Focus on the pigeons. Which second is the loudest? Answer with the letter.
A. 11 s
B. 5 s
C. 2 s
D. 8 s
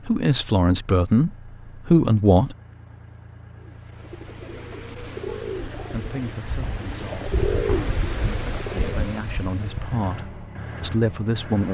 D.